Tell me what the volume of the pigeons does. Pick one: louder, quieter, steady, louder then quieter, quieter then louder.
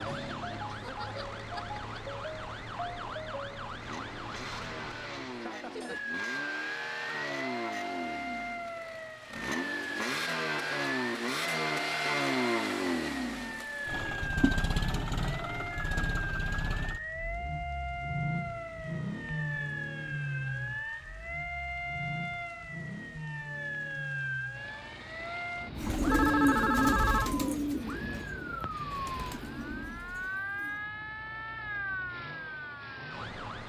quieter.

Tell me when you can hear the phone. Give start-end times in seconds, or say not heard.
26.1-27.4.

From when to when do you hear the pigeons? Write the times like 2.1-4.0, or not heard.
25.8-30.9.